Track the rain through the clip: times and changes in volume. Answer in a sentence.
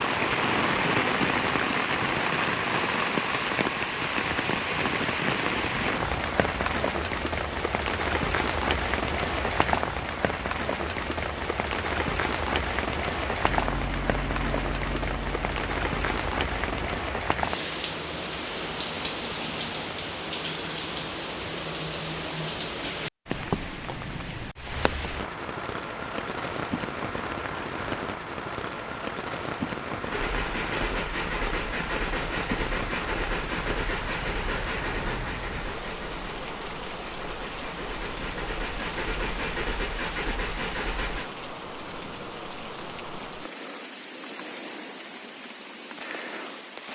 You can hear the rain from 0.0 to 46.9 s, getting quieter.